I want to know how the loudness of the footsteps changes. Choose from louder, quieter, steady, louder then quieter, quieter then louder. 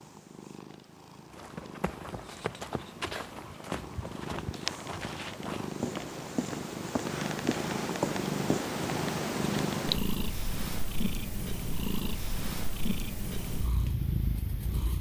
louder.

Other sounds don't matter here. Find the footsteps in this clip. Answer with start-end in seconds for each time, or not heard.
1.3-8.7.